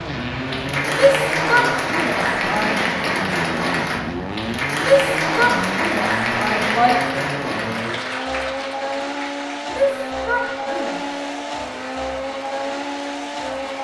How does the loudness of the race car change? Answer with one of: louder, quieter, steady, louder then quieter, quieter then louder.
steady.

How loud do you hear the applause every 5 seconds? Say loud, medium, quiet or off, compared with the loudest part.
loud, loud, quiet.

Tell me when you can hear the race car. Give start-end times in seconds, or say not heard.
0.0-13.7.